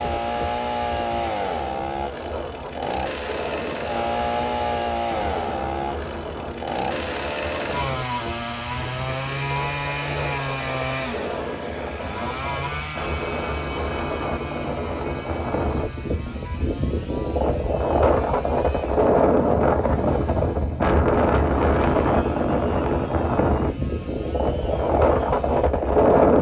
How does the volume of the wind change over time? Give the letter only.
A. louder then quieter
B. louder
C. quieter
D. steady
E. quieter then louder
B.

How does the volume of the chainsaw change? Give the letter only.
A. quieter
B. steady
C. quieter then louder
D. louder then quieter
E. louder
A.